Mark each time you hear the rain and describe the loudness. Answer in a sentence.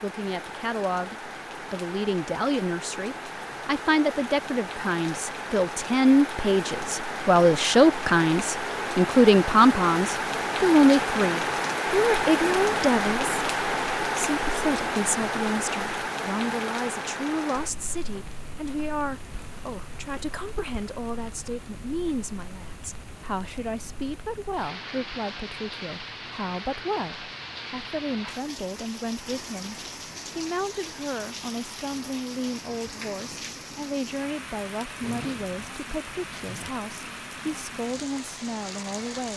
The rain can be heard from 0.0 to 39.3 s, getting louder then quieter.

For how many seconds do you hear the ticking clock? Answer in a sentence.
The ticking clock can't be heard in this clip.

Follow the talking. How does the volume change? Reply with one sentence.
The volume of the talking goes down.